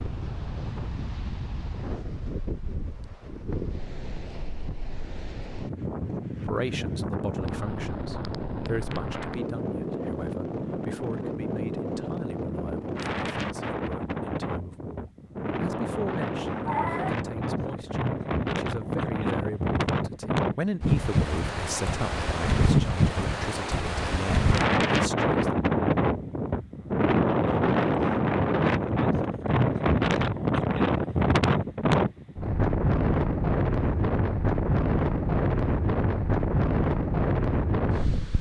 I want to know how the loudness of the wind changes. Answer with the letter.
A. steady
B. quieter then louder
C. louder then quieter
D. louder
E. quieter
D.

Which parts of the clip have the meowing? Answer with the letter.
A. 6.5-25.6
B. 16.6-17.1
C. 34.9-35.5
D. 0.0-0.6
B.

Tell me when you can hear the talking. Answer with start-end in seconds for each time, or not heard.
6.5-25.6.